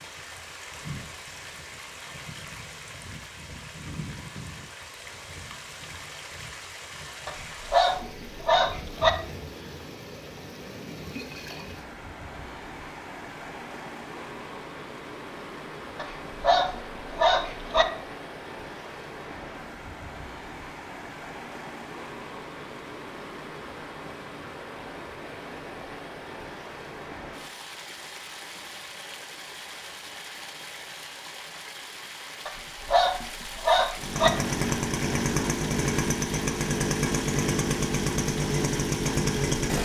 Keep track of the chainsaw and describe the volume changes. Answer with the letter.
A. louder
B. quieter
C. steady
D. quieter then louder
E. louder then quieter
C.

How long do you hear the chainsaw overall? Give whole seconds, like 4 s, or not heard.
6 s.